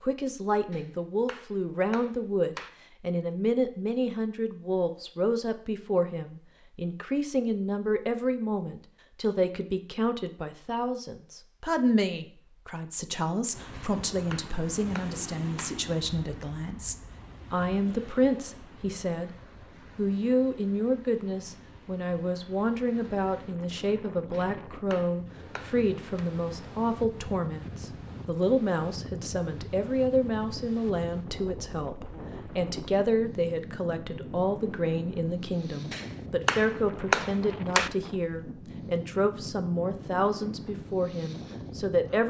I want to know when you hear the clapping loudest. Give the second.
37 s.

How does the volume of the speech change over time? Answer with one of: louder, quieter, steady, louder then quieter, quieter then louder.
steady.